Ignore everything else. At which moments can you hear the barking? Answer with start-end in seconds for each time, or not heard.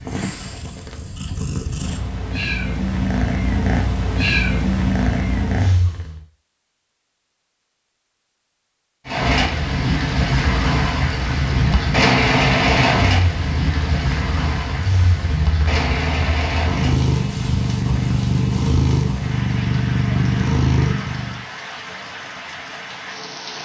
not heard.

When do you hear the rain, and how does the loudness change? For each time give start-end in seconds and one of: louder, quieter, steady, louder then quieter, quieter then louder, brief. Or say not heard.
9.1-23.6 quieter.